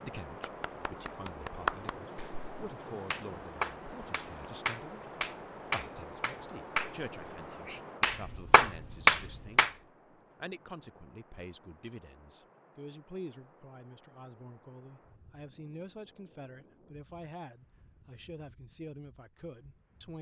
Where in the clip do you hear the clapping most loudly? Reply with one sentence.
The loudest moment of the clapping is at 9 seconds.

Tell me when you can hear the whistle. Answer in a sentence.
The whistle can't be heard in this clip.